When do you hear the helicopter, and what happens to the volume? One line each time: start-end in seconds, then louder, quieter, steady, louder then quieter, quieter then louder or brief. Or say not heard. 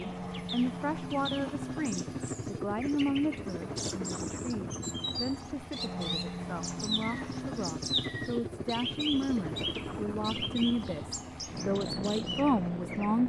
0.0-13.2 steady.